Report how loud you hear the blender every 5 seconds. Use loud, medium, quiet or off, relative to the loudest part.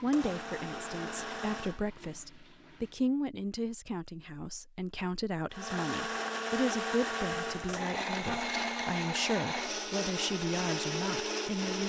medium, loud, loud.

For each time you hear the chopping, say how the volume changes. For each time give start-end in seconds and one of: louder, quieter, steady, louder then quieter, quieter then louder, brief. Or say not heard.
not heard.